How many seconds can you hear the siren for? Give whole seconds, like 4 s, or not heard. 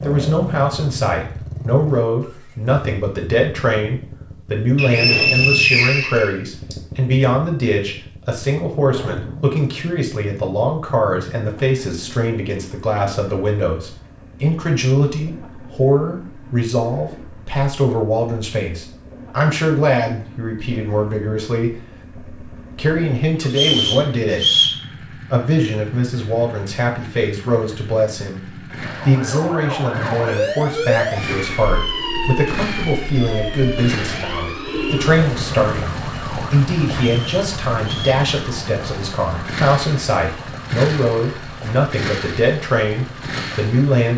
15 s.